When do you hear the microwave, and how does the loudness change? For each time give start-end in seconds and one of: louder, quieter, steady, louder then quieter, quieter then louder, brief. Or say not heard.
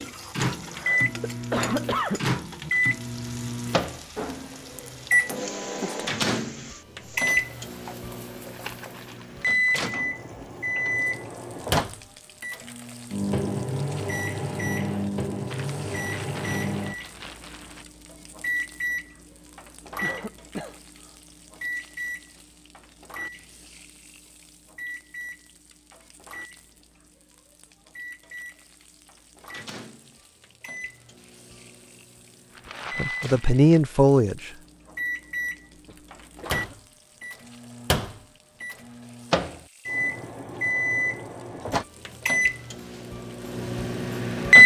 0.0-44.6 quieter then louder.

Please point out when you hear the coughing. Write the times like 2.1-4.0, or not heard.
0.7-2.7, 20.0-20.8, 35.8-36.6.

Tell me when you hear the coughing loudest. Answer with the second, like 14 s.
2 s.